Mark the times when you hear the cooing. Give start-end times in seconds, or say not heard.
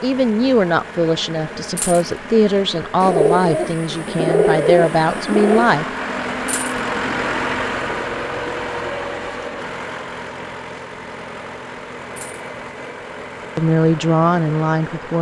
3.0-5.8.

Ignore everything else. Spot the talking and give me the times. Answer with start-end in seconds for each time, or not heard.
0.0-5.8, 13.6-15.1.